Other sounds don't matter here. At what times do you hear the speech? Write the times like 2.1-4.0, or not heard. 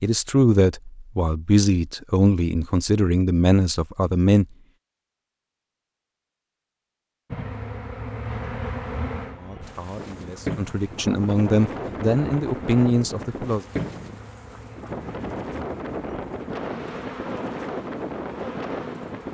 0.0-4.5, 9.3-13.7.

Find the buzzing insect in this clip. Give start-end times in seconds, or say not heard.
7.3-19.2.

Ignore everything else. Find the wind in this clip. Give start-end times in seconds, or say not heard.
9.6-19.2.